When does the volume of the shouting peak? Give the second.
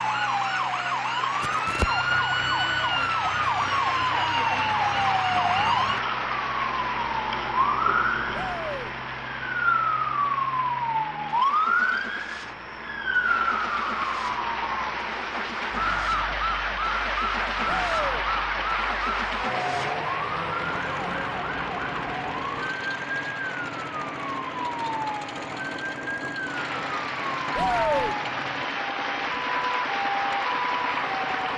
28 s.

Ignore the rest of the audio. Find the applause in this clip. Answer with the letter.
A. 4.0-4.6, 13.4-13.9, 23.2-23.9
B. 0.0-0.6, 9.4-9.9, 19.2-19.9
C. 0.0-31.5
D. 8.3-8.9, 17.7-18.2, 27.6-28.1
C.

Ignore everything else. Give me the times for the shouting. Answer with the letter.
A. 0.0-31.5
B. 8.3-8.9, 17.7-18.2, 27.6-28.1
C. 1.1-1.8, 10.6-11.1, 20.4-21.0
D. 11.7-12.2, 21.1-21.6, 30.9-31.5
B.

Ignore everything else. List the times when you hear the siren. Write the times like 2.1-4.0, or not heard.
0.0-31.4.